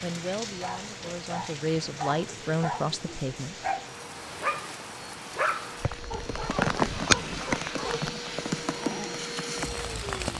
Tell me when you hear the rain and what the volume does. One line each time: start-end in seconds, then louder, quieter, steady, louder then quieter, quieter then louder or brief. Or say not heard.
0.0-10.3 louder then quieter.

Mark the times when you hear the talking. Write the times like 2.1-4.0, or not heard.
0.0-3.5.